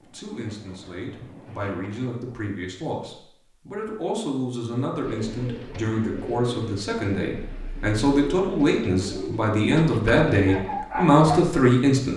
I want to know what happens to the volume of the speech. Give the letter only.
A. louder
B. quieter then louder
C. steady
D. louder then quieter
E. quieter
A.